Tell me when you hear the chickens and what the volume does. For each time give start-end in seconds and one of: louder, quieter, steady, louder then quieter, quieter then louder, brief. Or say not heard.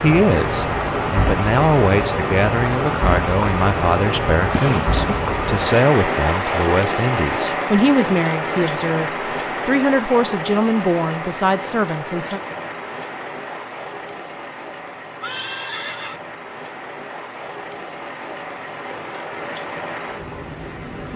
not heard.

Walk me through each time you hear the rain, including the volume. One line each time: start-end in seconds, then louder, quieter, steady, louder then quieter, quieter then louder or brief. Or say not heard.
0.0-21.1 quieter.